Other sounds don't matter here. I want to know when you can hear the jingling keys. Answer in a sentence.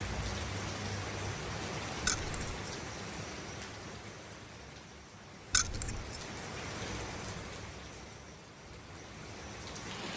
The jingling keys can be heard from 2.0 to 2.7 s and from 5.5 to 6.2 s.